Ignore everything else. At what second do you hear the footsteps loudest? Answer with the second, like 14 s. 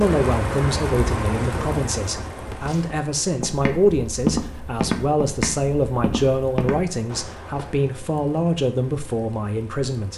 4 s.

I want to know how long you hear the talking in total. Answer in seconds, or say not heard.
10 s.